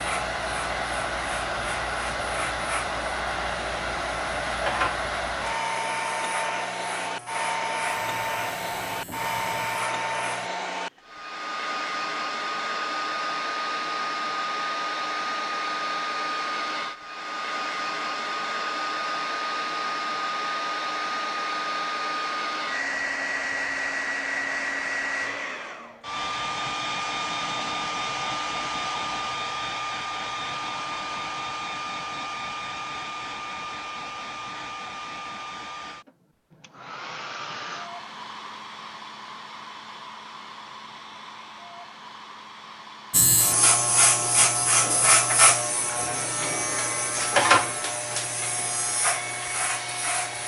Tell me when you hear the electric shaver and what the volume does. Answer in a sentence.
You can hear the electric shaver from 0.0 to 10.5 s, getting louder then quieter; and from 43.1 to 50.4 s, getting quieter.